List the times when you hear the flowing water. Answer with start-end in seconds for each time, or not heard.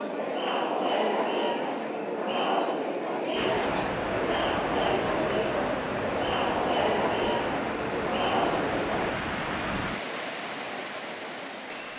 3.4-11.9.